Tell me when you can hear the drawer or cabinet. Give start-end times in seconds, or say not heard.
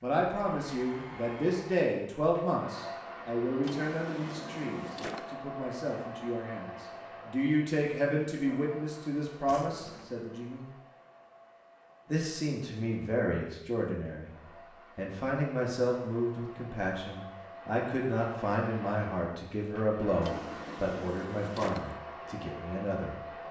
3.6-5.3, 9.4-10.2, 20.2-21.9.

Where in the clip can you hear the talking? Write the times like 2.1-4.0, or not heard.
0.0-10.7, 12.1-14.3, 14.9-23.1.